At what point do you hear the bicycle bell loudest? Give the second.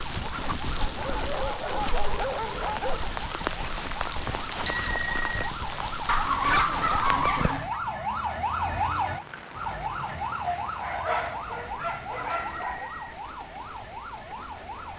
5 s.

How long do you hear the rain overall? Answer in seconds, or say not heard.
15 s.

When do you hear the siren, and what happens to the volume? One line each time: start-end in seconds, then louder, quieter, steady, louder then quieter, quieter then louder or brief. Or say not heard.
0.0-14.9 louder then quieter.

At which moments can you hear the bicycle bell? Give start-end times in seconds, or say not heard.
4.7-5.5, 12.3-13.1.